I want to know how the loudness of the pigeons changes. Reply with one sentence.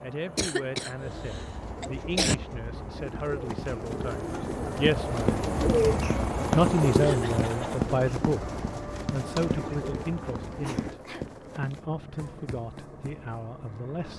The loudness of the pigeons goes up, then down.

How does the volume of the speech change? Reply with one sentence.
The loudness of the speech goes up, then down.